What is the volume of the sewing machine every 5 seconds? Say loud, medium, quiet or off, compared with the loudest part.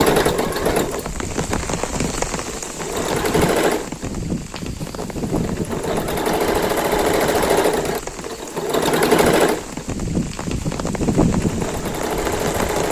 loud, loud, medium.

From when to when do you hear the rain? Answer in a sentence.
You can hear the rain from 0.0 to 12.8 s.